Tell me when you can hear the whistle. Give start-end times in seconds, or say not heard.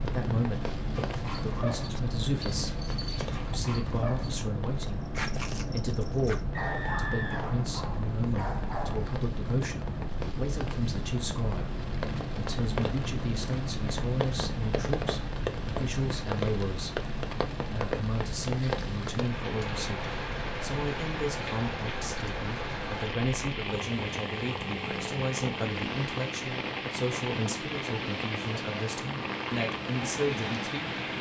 6.5-7.5.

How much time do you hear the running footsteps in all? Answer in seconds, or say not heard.
not heard.